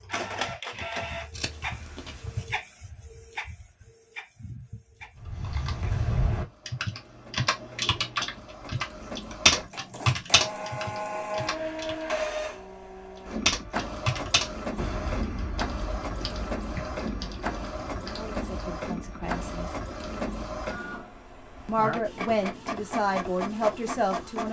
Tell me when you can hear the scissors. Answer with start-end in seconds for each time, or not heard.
1.3-2.5.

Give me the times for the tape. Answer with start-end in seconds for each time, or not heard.
not heard.